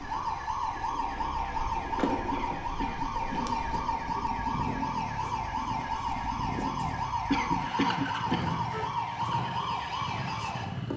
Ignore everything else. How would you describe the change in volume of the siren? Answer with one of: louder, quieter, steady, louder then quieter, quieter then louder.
steady.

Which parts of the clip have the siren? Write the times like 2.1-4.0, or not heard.
0.0-10.9.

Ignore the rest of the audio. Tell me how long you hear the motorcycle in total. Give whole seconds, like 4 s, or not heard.
11 s.